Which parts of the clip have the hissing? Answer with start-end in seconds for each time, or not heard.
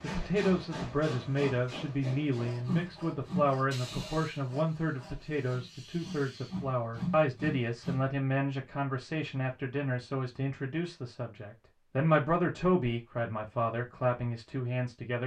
0.0-8.1.